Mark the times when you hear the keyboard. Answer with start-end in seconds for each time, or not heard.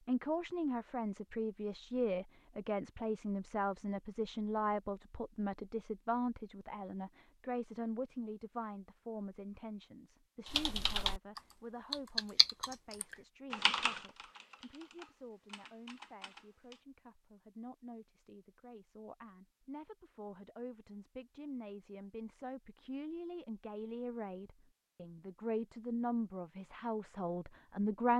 10.4-16.8.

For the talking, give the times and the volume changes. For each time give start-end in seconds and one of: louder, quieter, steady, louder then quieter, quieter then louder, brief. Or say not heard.
0.1-28.1 quieter then louder.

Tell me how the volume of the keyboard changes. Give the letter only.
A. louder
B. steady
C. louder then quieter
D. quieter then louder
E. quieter
E.